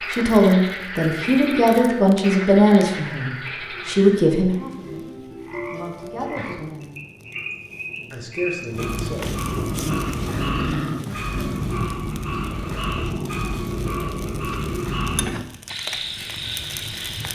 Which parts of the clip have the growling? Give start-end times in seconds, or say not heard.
9.6-11.6.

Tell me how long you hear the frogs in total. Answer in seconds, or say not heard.
17 s.